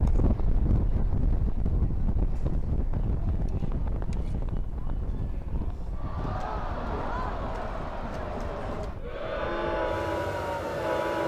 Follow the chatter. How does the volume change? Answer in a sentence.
The volume of the chatter goes up.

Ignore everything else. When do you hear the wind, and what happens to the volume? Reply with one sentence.
You can hear the wind from 0.0 to 11.2 s, getting quieter.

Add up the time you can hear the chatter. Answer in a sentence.
The chatter can be heard for 11 seconds in total.